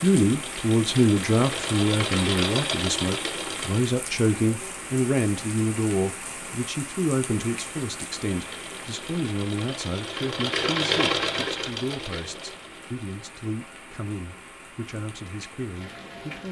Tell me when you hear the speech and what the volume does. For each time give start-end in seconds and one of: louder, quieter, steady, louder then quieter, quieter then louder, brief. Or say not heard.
0.0-16.4 quieter.